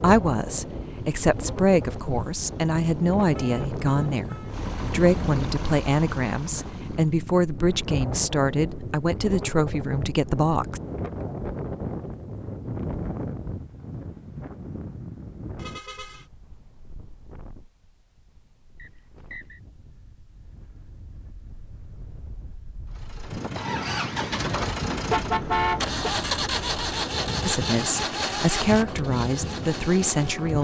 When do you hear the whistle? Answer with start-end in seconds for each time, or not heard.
18.8-19.6.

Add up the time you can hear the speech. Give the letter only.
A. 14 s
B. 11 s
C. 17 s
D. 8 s
A.